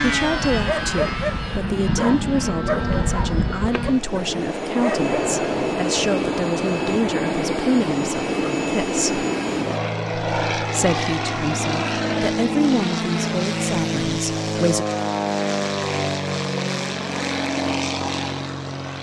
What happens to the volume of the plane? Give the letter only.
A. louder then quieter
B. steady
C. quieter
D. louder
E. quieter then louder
B.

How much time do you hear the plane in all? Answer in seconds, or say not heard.
19 s.